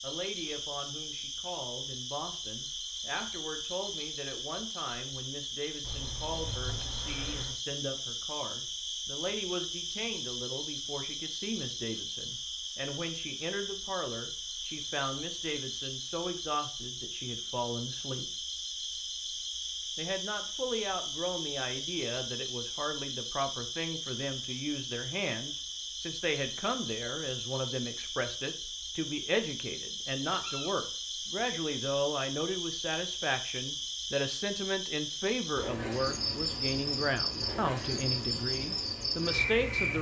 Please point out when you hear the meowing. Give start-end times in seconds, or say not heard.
5.8-7.6, 30.2-30.9.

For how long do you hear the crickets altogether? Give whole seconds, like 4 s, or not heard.
40 s.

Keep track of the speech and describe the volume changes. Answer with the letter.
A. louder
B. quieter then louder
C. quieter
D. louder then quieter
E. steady
A.